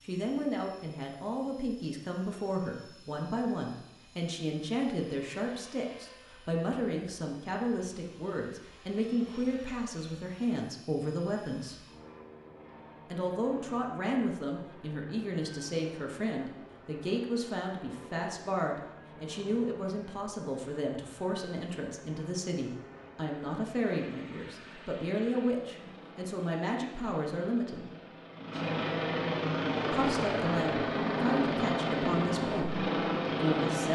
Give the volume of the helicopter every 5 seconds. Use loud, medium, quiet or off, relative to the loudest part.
quiet, quiet, quiet, quiet, quiet, medium, loud.